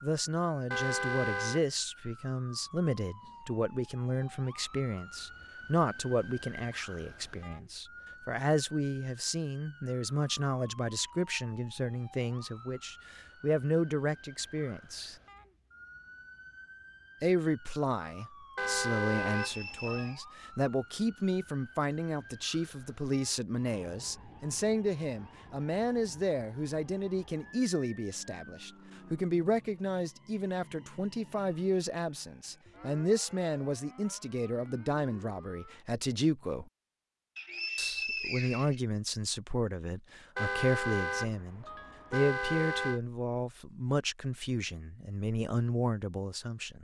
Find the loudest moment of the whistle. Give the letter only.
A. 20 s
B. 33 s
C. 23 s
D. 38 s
D.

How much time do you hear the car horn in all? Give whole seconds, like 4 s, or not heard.
5 s.